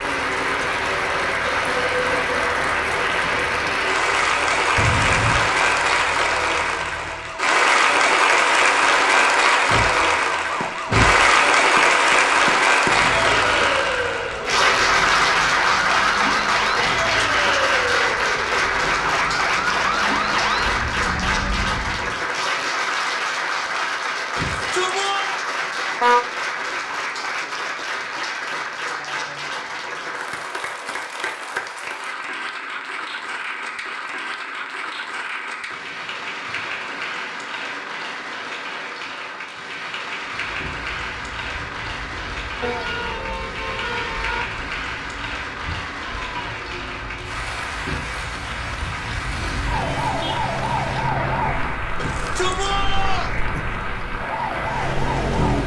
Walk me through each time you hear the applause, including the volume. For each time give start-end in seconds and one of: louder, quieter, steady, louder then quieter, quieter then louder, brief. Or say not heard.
0.0-55.6 quieter.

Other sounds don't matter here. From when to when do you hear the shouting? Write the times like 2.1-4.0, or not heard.
24.4-25.3, 52.0-53.4.